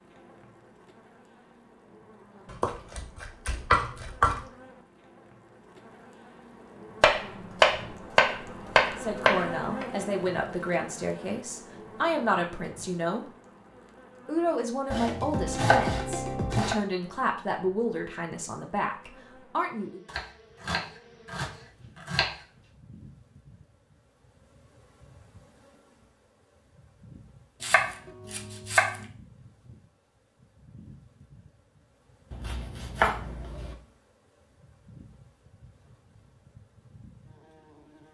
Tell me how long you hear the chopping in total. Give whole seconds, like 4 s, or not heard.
12 s.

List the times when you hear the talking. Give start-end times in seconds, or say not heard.
8.9-13.2, 14.2-20.0.